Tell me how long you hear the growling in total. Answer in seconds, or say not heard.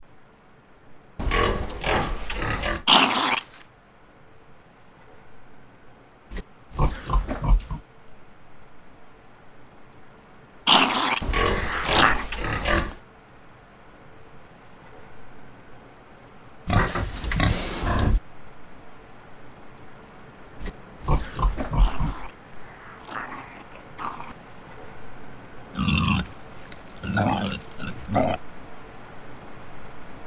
5 s.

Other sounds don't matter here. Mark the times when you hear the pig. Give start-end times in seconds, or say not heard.
1.1-2.9, 6.3-7.8, 11.2-13.0, 16.6-18.2, 20.6-22.3, 25.8-28.4.